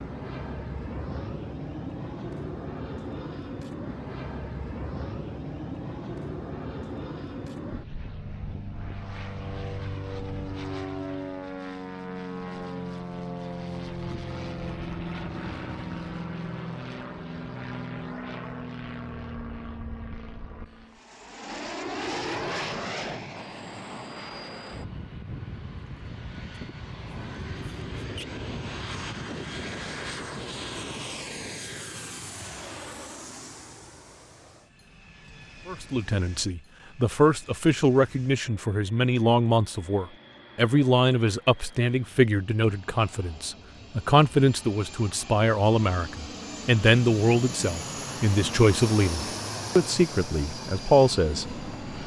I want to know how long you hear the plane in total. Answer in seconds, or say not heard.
52 s.